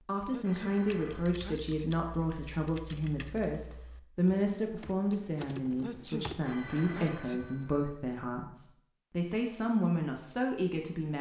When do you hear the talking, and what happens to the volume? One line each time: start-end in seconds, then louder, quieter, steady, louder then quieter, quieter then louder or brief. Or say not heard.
0.1-11.1 steady.